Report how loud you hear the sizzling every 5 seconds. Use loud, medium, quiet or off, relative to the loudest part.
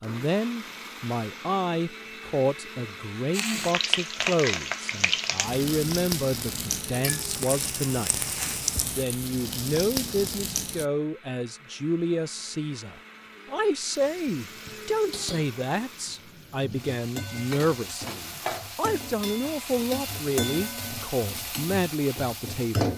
loud, loud, medium, medium, loud.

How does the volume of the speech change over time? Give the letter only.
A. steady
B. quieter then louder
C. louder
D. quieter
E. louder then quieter
A.